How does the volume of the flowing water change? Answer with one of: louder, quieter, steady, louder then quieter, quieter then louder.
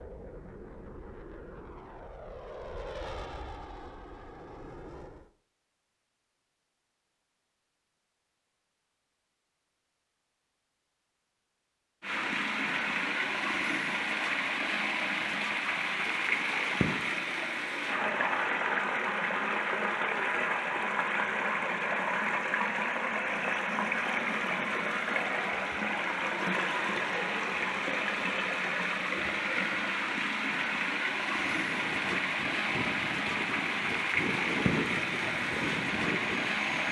steady.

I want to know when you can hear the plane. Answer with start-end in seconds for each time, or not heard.
0.0-5.3, 31.2-36.8.